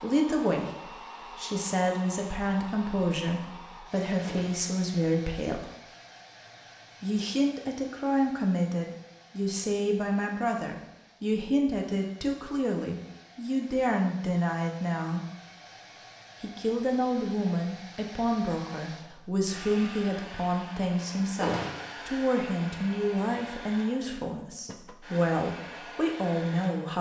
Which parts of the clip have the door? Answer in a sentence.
You can hear the door from 4.2 to 4.7 s and from 21.4 to 21.9 s.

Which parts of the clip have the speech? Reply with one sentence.
You can hear the speech from 0.0 to 5.7 s, from 7.0 to 15.2 s and from 16.4 to 26.9 s.